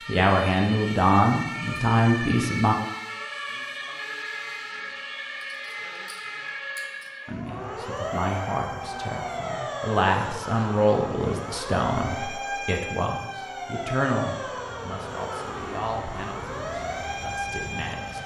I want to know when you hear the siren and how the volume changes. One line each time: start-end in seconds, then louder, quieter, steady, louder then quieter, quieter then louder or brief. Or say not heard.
0.0-18.2 steady.